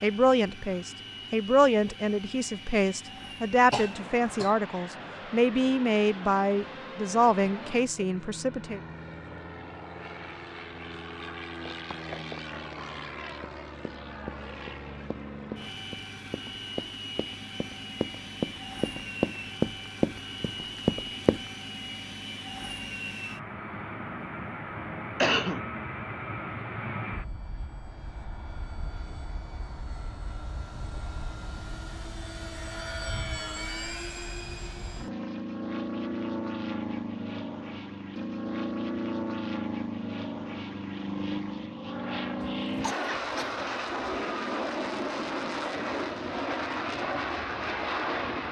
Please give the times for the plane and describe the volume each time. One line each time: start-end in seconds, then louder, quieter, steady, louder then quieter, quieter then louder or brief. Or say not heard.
0.0-48.4 louder.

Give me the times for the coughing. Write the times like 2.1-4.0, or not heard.
3.7-4.5, 25.2-25.6, 42.5-44.2.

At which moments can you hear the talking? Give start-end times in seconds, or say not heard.
0.0-8.8.